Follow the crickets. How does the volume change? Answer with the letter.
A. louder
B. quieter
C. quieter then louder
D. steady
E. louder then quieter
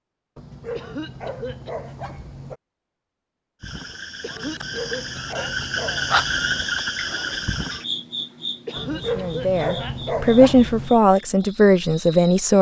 E.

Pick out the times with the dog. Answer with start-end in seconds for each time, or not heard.
0.3-2.6, 4.5-6.7, 8.8-10.9.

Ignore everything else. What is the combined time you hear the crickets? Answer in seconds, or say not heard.
9 s.